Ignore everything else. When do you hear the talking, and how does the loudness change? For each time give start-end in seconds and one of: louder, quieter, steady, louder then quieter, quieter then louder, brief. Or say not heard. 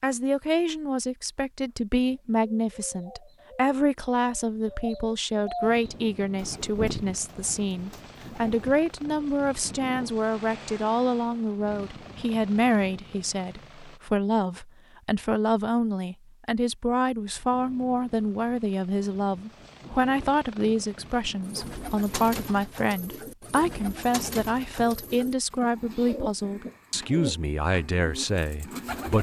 0.0-29.1 steady.